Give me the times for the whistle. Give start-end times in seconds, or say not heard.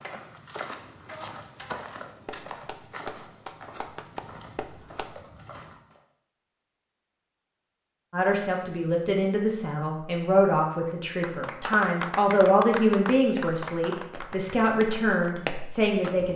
not heard.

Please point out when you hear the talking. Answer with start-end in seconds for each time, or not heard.
8.1-16.3.